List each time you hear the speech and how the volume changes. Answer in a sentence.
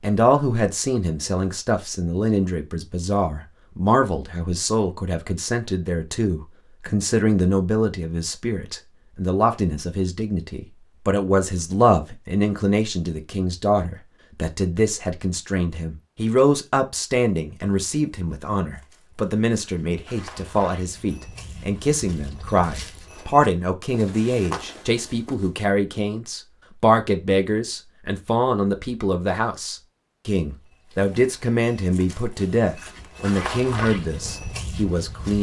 You can hear the speech from 0.0 to 35.3 s, at a steady volume.